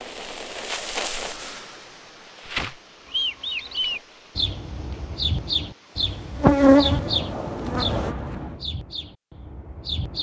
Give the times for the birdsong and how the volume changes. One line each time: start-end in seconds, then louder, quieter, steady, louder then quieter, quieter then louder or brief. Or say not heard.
3.1-10.1 quieter.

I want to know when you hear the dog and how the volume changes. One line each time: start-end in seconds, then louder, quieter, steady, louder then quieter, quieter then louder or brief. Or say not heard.
not heard.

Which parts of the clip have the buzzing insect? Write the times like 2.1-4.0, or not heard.
0.0-4.2, 6.3-8.7.